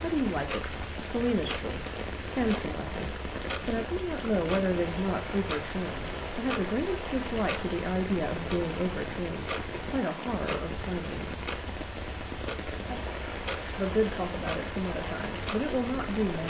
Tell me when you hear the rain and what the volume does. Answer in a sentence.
You can hear the rain from 0.0 to 16.4 s, at a steady volume.